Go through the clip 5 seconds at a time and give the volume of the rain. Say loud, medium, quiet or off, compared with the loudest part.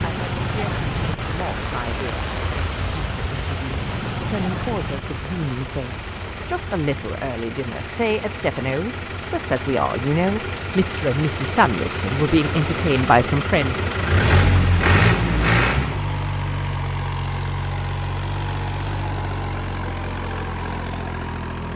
loud, medium, medium, off, off.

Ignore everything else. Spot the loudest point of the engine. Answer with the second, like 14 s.
15 s.